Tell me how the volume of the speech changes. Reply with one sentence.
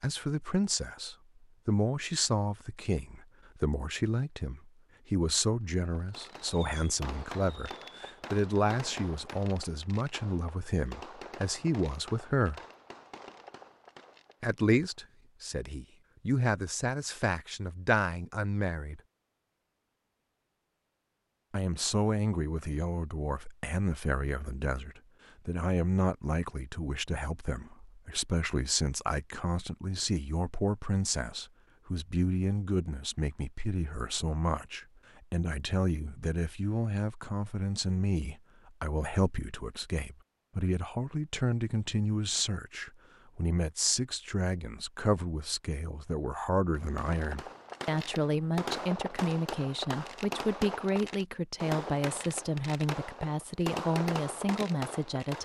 The loudness of the speech stays about the same.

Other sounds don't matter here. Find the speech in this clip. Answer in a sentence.
You can hear the speech from 0.0 to 12.6 s, from 14.4 to 19.0 s and from 21.5 to 55.3 s.